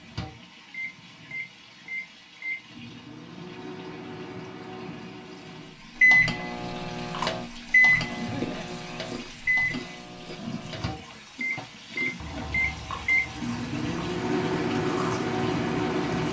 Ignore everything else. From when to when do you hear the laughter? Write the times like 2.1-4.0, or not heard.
8.2-8.8.